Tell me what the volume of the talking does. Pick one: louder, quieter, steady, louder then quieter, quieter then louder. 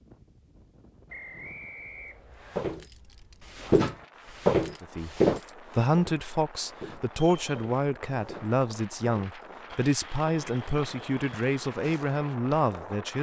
steady.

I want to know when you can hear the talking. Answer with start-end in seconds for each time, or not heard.
4.8-13.1.